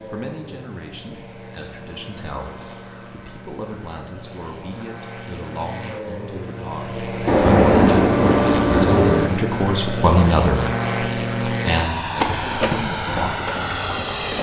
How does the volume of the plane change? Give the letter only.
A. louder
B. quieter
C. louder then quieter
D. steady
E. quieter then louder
A.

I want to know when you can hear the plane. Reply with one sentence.
You can hear the plane from 0.0 to 14.3 s.